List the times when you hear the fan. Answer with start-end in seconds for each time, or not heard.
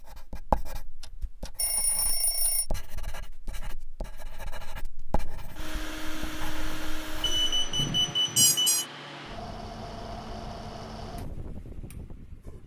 5.0-12.6.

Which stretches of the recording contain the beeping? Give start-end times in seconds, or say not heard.
1.0-2.6, 7.2-8.8.